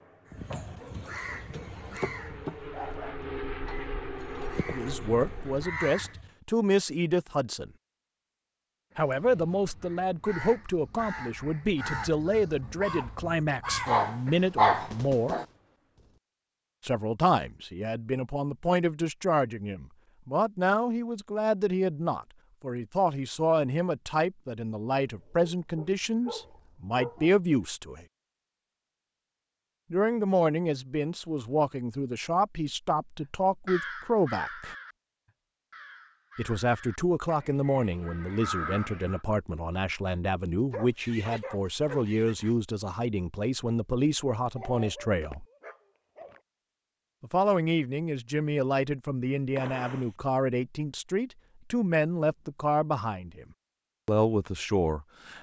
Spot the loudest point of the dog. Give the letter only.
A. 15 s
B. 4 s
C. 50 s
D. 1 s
A.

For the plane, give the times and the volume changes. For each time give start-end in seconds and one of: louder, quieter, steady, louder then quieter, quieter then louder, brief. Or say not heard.
0.0-5.7 louder.